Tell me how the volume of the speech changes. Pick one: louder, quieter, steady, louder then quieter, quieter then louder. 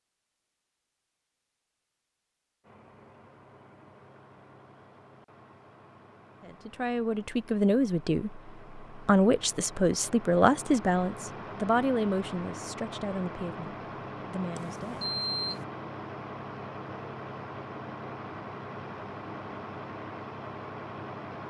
quieter.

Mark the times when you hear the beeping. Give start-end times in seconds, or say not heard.
14.6-15.7.